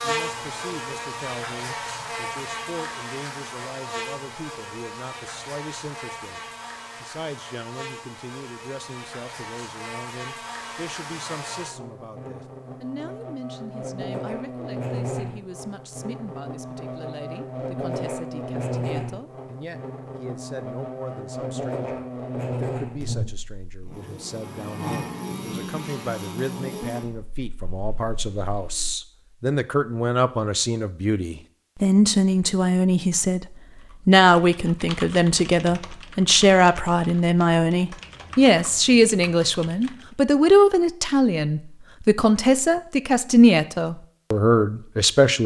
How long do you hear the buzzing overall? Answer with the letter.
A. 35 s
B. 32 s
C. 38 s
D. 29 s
D.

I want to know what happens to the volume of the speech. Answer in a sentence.
The volume of the speech goes up.